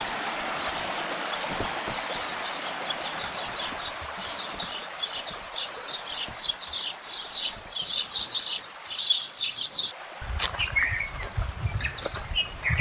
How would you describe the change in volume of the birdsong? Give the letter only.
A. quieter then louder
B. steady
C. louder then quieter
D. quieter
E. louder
E.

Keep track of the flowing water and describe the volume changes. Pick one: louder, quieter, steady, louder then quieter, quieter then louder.
quieter.